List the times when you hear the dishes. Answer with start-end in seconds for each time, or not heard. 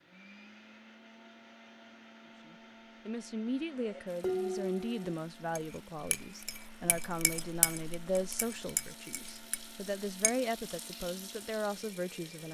3.8-10.3.